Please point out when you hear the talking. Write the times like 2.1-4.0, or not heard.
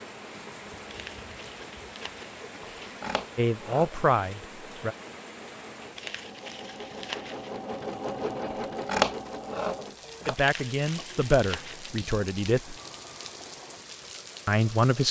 3.4-5.0, 10.2-12.8, 14.4-15.0.